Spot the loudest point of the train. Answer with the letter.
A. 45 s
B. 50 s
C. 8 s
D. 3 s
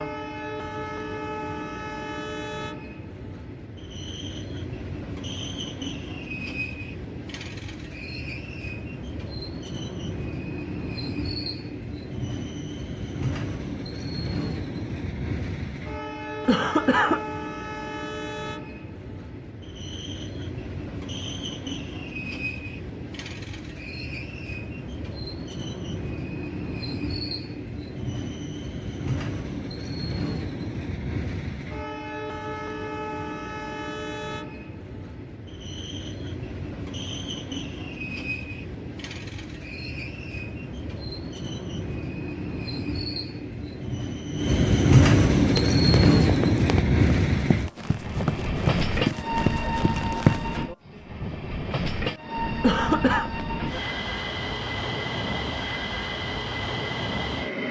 A.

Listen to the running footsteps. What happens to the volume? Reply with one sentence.
The loudness of the running footsteps goes up.